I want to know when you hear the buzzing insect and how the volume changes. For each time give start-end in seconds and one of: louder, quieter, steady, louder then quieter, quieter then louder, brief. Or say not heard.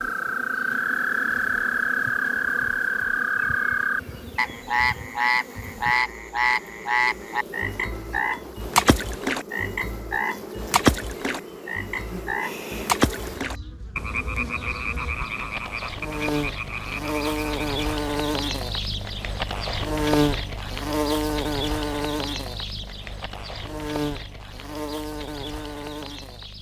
0.0-26.5 louder.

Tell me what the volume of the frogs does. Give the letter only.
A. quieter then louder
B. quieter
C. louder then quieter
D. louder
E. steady
B.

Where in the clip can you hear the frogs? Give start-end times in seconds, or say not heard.
0.0-17.9.